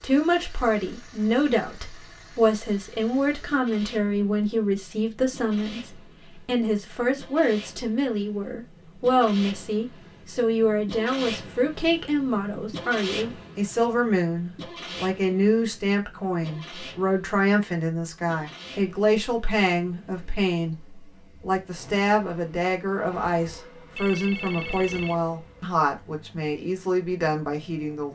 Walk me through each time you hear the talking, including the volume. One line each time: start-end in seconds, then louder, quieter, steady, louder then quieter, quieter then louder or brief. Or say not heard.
0.0-28.1 steady.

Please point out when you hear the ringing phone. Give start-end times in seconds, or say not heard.
23.9-25.2.